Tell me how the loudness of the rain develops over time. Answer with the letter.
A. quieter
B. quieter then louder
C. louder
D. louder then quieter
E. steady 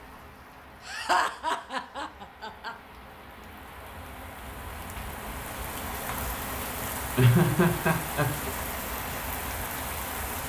C.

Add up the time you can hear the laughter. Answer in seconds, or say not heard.
3 s.